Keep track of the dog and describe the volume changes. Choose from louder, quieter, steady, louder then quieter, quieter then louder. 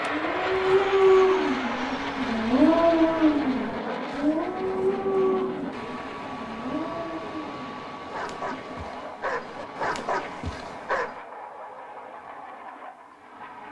quieter.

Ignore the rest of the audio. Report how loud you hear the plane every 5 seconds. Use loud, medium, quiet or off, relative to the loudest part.
loud, medium, medium.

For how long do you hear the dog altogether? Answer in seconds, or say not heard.
11 s.